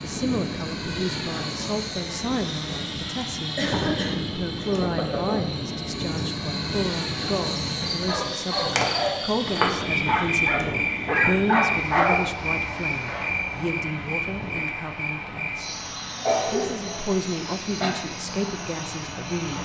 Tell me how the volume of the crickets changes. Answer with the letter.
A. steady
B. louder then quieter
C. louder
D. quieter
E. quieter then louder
B.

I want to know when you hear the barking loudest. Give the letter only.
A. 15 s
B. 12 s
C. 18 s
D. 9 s
B.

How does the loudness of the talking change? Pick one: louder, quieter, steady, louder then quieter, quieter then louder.
steady.